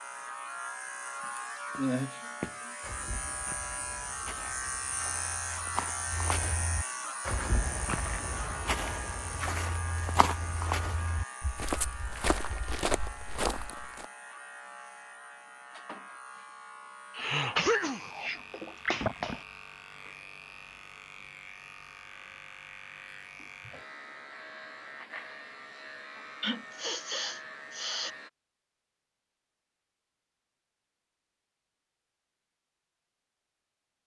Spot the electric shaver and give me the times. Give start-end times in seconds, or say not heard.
0.0-28.3.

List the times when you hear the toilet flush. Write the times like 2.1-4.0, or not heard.
not heard.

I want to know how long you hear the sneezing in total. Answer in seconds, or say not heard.
5 s.